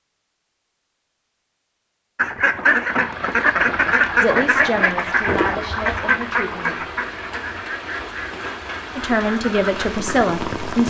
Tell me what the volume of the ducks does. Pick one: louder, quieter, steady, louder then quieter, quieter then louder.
quieter.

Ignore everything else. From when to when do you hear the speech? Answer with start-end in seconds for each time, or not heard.
4.2-6.8, 8.9-10.8.